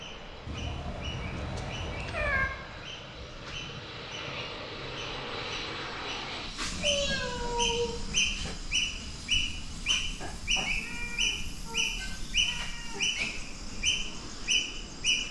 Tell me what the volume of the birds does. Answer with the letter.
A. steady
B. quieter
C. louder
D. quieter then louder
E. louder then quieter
C.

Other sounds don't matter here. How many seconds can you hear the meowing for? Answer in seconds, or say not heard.
6 s.